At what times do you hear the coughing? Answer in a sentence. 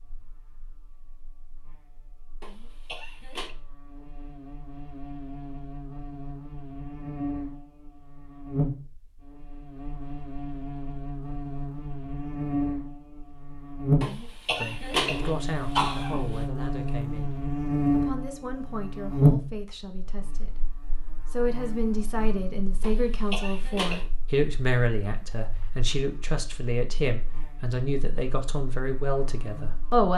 You can hear the coughing from 2.4 to 3.5 s, from 14.0 to 16.3 s and from 22.8 to 24.1 s.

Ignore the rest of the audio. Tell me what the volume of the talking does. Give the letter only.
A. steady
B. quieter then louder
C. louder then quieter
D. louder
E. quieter
D.